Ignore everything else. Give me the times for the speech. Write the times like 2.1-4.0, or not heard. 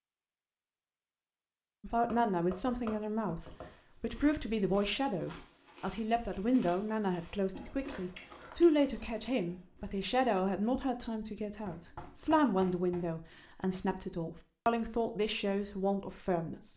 1.8-16.7.